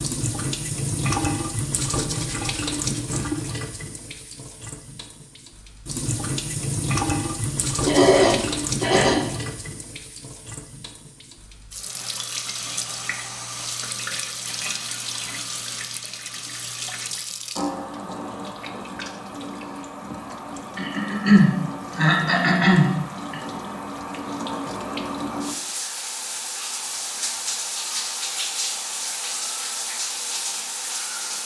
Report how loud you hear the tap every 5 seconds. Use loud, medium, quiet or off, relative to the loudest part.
loud, loud, medium, medium, medium, loud, loud.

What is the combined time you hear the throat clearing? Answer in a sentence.
The throat clearing can be heard for 4 seconds in total.